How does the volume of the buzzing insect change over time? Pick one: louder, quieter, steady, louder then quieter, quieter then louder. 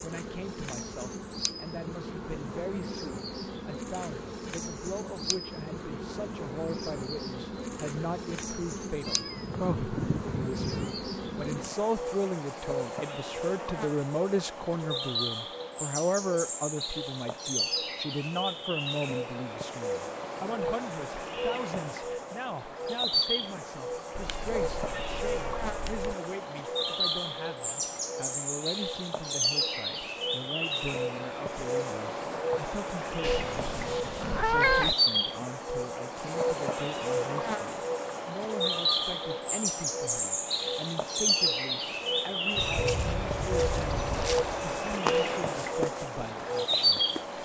louder.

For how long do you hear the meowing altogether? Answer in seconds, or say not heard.
6 s.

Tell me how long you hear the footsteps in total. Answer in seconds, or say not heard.
5 s.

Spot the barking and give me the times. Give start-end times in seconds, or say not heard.
not heard.